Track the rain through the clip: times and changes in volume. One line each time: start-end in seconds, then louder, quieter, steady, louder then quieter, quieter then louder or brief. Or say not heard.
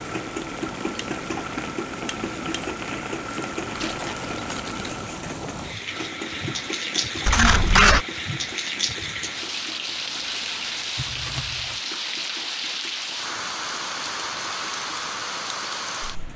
0.0-16.3 louder.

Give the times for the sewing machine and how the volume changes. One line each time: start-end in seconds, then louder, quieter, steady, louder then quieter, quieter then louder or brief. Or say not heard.
0.0-16.3 quieter.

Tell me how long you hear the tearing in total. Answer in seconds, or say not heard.
2 s.